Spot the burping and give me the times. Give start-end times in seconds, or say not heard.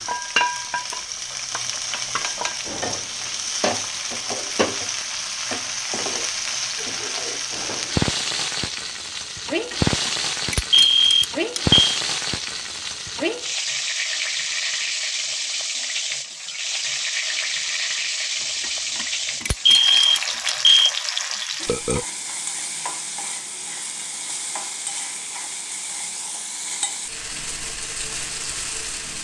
21.6-22.1.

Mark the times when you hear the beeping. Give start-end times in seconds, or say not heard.
9.7-11.8, 18.4-20.9.